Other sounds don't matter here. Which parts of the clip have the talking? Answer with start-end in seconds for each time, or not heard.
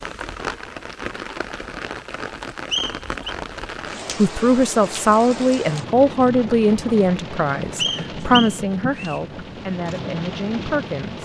4.2-11.1.